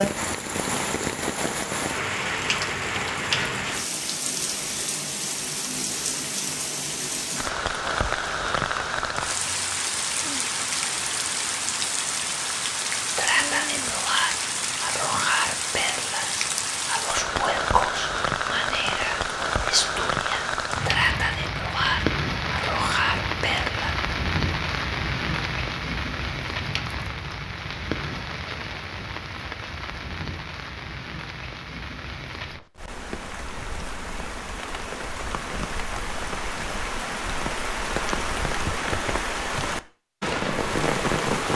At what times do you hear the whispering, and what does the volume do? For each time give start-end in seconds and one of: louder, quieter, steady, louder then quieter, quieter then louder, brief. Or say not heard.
13.2-23.9 steady.